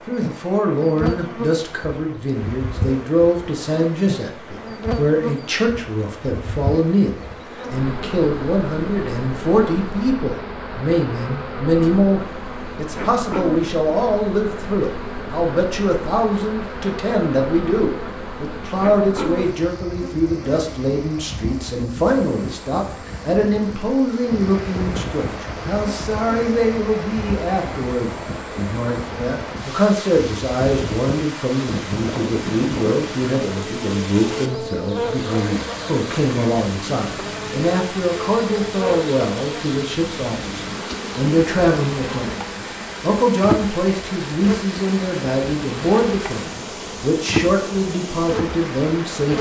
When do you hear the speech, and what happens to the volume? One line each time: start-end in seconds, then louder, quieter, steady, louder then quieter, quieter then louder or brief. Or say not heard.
0.1-49.3 steady.